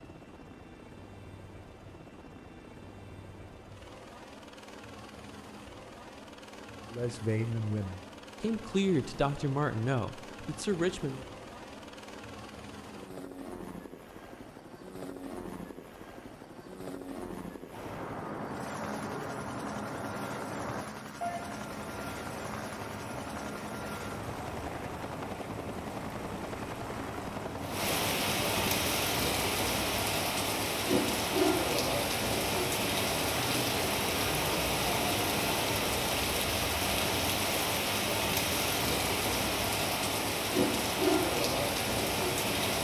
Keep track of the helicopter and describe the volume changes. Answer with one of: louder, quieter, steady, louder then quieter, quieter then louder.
louder.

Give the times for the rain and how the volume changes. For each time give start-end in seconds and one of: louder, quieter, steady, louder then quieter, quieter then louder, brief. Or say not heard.
17.7-42.7 louder.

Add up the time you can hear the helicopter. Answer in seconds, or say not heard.
29 s.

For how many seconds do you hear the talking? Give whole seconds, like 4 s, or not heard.
4 s.